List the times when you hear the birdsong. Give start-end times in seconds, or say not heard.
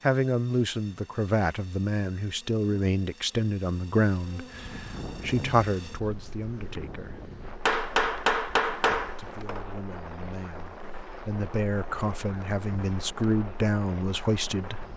not heard.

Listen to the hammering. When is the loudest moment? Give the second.
8 s.